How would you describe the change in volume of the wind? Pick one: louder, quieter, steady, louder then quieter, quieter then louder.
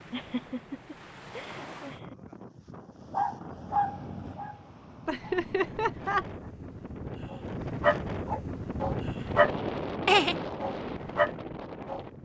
louder.